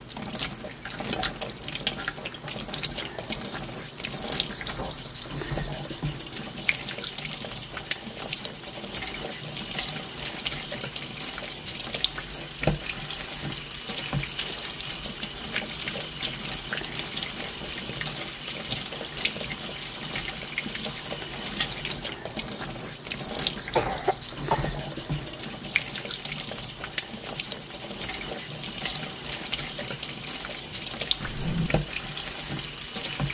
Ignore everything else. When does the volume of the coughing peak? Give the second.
24 s.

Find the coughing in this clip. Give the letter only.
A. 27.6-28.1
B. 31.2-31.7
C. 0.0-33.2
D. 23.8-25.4
D.